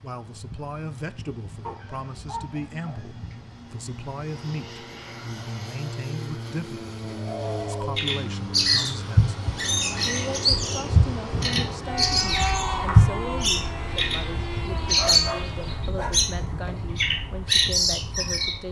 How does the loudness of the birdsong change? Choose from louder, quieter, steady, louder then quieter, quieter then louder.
steady.